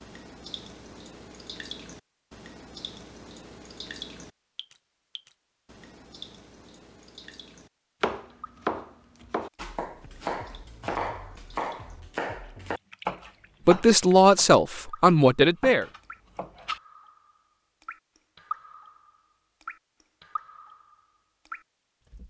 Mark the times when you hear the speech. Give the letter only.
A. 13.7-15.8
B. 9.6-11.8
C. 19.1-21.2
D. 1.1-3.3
A.